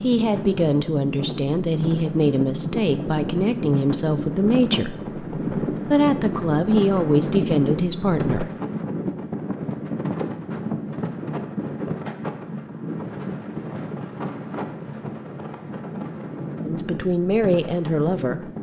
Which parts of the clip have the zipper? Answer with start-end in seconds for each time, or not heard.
not heard.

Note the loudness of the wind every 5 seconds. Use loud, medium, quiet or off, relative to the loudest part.
loud, loud, loud, medium.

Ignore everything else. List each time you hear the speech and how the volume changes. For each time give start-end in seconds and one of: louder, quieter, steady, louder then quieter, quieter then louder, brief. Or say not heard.
0.0-8.5 steady
16.6-18.4 brief.